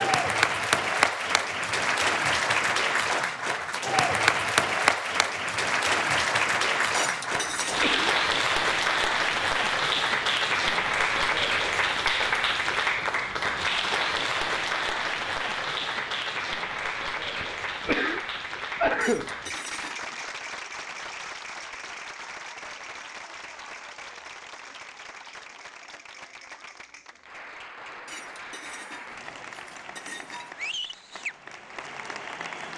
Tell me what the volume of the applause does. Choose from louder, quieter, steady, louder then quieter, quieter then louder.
quieter.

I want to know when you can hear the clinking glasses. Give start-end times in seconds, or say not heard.
6.9-7.8, 19.0-20.2, 28.1-30.6.